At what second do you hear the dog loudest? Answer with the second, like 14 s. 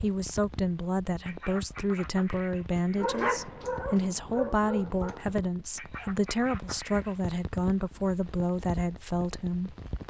3 s.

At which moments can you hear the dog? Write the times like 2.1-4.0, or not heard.
2.9-5.5.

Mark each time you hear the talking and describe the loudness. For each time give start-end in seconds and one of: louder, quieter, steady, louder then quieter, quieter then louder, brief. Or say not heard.
0.0-10.0 steady.